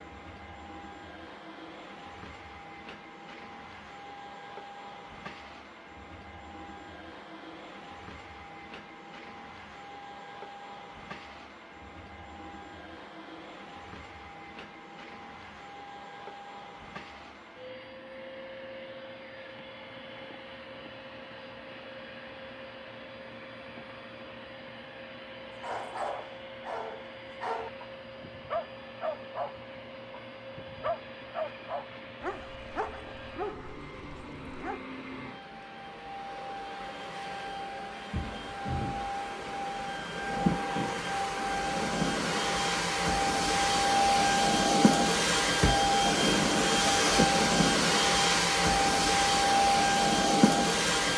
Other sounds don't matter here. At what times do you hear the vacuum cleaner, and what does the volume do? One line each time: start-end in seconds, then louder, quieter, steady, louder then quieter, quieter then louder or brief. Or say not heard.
0.0-51.1 louder.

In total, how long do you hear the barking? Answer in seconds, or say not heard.
9 s.